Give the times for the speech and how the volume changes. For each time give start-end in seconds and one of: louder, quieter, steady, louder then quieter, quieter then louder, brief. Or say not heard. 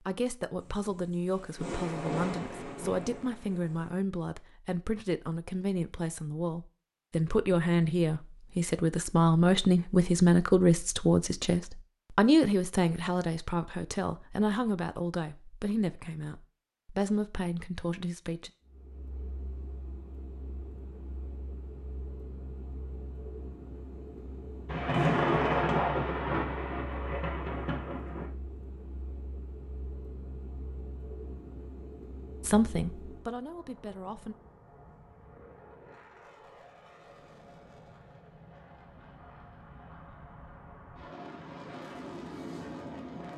0.1-18.5 louder then quieter
32.4-34.4 brief.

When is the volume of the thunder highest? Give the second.
25 s.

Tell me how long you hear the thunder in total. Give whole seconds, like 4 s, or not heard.
7 s.